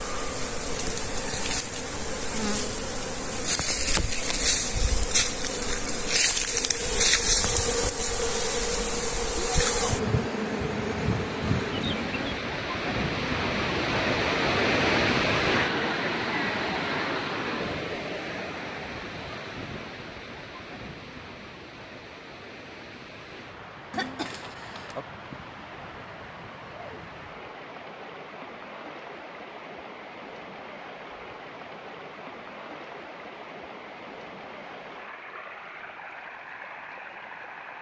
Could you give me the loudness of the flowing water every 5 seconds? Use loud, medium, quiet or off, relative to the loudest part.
quiet, quiet, loud, loud, quiet, quiet, quiet, quiet.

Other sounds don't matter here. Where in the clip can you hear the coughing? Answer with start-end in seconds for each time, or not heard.
23.9-25.1.